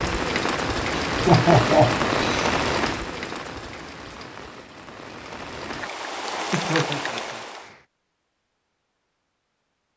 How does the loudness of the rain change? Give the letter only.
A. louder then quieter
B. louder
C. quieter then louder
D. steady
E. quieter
C.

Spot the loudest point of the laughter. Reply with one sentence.
The loudest moment of the laughter is at 1 second.